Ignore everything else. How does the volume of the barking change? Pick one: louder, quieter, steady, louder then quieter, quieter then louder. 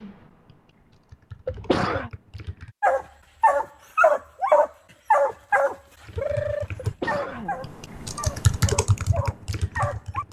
quieter.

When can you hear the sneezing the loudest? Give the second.
2 s.